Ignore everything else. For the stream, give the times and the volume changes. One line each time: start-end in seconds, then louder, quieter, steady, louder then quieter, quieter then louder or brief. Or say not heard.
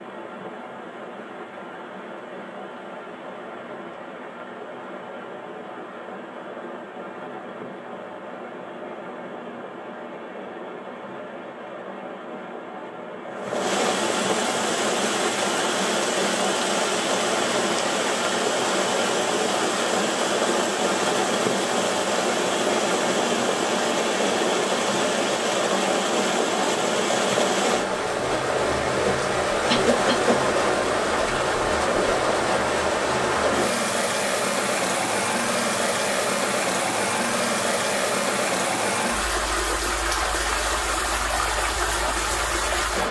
0.0-43.0 louder.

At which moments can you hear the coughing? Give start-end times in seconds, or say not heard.
29.6-30.4.